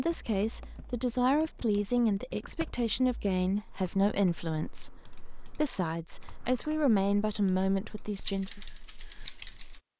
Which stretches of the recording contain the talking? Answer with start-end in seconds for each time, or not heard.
0.0-8.6.